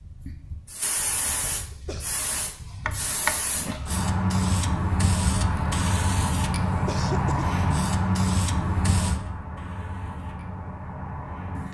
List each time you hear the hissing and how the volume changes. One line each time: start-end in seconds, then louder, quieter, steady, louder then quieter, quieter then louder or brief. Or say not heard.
0.0-11.6 louder then quieter.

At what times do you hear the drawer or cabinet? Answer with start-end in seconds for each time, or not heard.
2.9-4.0.